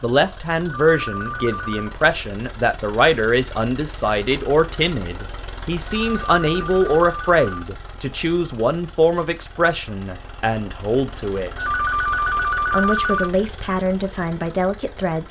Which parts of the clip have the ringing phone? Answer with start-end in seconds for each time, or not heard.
0.8-1.9, 5.8-7.6, 11.6-13.3.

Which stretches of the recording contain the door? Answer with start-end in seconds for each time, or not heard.
not heard.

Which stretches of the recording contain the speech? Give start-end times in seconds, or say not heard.
0.0-11.7, 12.7-15.2.